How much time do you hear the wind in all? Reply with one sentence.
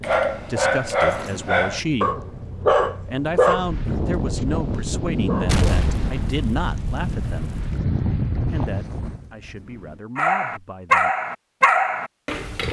The wind can be heard for 10 seconds in total.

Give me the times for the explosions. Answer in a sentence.
You can hear the explosions from 5.5 to 7.8 s.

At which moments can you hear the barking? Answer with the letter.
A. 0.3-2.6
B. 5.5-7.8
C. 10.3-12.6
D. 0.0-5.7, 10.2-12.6
D.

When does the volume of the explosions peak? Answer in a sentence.
The loudest moment of the explosions is at 6 seconds.